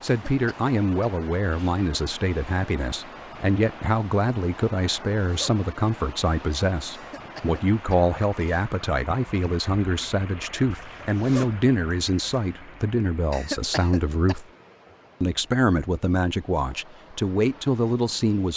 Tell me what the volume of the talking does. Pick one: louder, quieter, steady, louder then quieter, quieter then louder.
steady.